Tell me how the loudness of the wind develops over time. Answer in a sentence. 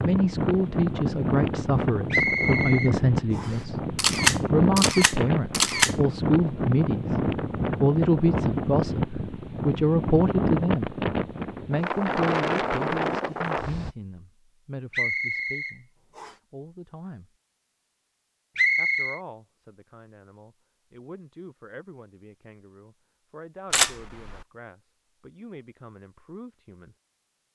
The volume of the wind stays about the same.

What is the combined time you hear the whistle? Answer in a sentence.
The whistle can be heard for 4 seconds in total.